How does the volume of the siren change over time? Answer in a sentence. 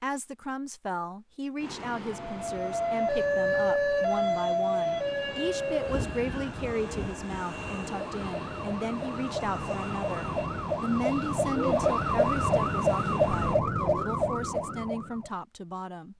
The loudness of the siren goes down, then up.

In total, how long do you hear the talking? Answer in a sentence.
The talking can be heard for 16 seconds in total.